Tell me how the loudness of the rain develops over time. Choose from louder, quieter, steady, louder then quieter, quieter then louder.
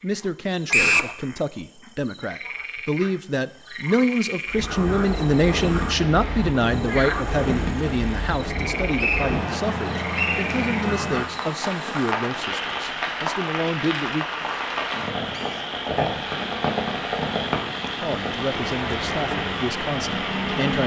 steady.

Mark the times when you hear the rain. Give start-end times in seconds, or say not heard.
4.5-20.8.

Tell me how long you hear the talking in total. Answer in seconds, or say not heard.
17 s.